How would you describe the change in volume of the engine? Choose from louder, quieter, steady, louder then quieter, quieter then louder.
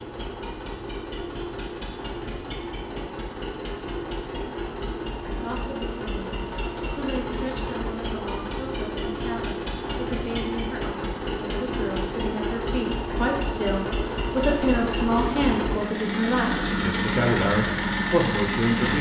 louder.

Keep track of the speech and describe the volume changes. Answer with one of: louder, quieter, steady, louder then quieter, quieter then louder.
louder.